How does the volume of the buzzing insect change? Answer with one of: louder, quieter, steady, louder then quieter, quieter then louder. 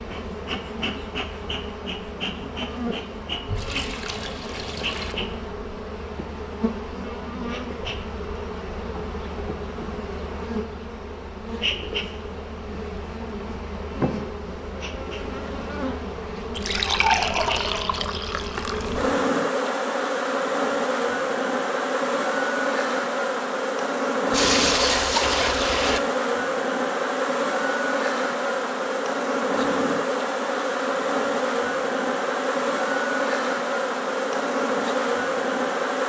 louder.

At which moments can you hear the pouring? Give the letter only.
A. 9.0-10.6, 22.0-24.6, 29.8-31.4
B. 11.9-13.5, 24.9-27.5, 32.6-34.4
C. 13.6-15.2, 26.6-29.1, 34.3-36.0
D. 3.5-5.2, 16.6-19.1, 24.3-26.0
D.